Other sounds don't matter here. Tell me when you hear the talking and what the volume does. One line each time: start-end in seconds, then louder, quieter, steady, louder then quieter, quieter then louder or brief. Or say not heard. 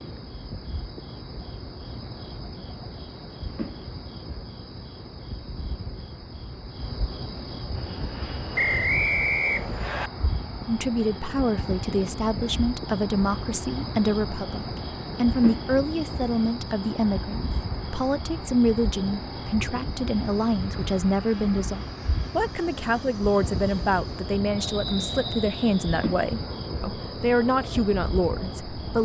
10.7-29.0 steady.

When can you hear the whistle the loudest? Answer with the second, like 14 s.
9 s.